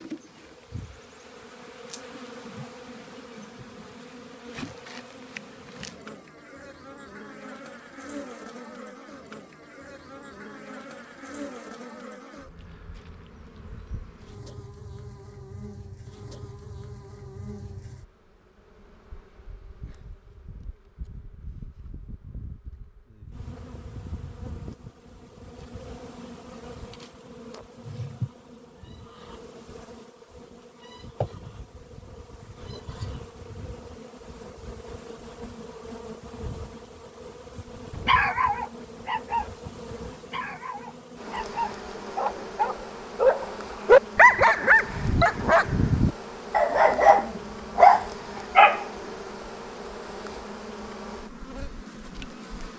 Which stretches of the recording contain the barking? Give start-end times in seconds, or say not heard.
38.0-48.9.